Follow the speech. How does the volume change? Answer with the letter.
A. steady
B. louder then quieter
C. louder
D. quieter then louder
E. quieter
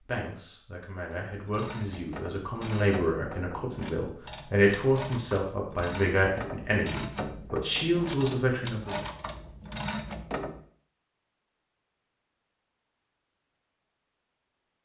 C.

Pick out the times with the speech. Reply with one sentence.
You can hear the speech from 0.0 to 9.1 s.